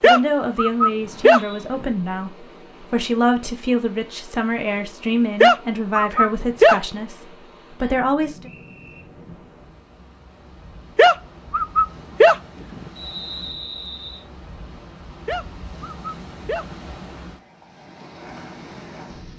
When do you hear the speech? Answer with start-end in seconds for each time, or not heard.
0.0-8.5.